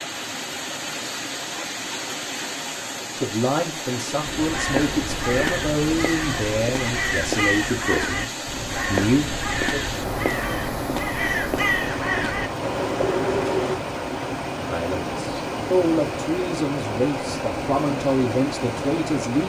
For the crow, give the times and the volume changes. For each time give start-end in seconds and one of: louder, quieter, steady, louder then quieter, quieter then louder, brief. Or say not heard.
4.2-13.8 steady.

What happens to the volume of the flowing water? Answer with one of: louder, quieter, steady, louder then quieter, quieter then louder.
steady.